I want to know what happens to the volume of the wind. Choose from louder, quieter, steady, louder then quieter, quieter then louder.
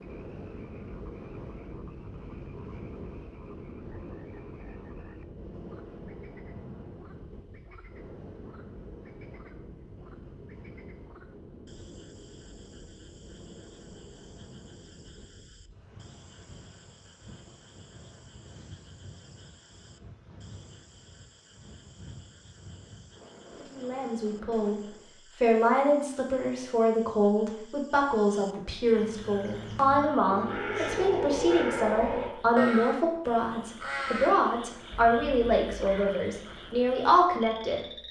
quieter.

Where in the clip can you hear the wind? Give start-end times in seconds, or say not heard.
0.0-25.1.